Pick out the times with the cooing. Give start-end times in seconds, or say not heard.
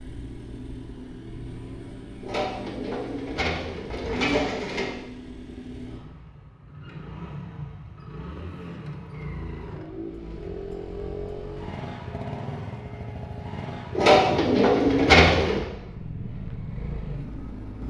2.2-5.0, 13.9-15.7.